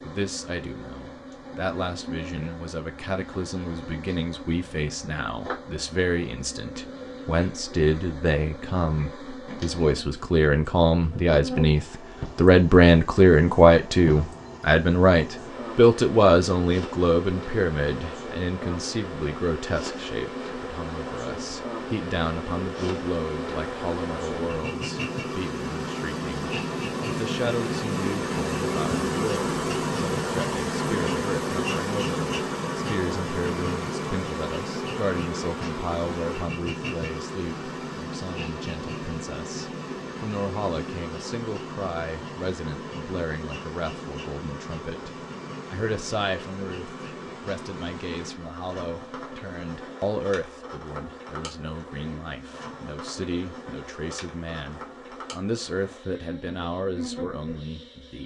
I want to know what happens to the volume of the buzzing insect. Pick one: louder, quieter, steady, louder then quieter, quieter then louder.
louder then quieter.